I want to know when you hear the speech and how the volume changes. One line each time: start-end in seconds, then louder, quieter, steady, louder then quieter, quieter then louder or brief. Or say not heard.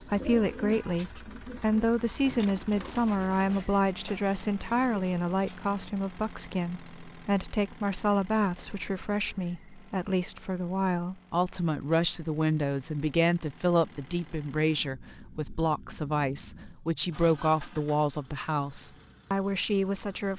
0.1-20.3 steady.